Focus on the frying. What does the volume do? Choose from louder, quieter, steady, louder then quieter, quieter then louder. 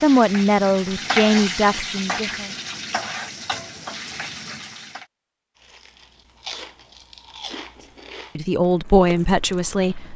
quieter.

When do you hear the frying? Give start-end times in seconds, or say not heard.
0.0-5.0.